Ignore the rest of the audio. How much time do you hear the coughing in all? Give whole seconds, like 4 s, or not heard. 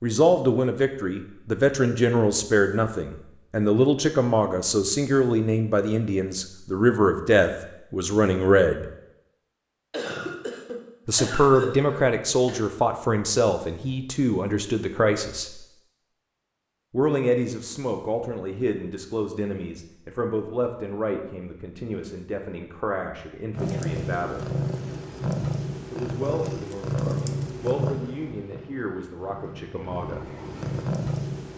3 s.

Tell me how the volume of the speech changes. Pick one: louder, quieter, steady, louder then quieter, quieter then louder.
quieter.